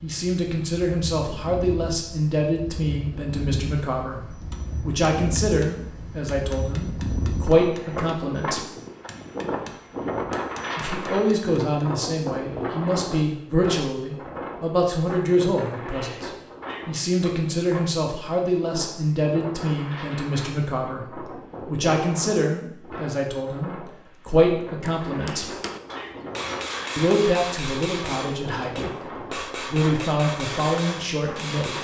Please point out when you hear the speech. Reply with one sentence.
The speech can be heard from 0.0 to 8.6 s, from 10.8 to 25.4 s and from 26.9 to 31.7 s.